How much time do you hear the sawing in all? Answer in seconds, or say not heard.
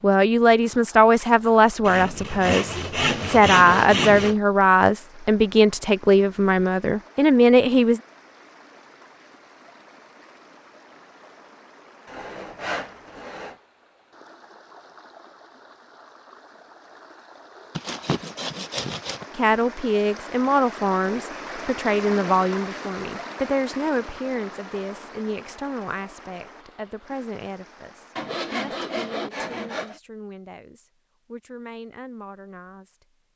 7 s.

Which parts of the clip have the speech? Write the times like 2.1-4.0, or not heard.
0.0-8.0, 19.4-33.0.